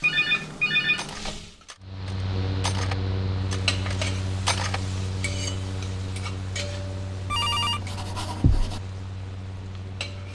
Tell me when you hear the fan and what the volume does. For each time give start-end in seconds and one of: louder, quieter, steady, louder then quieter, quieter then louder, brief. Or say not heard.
1.8-10.2 quieter.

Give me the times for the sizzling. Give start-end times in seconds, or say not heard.
0.0-1.8, 3.5-10.2.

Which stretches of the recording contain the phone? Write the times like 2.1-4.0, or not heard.
0.0-1.1, 7.3-8.8.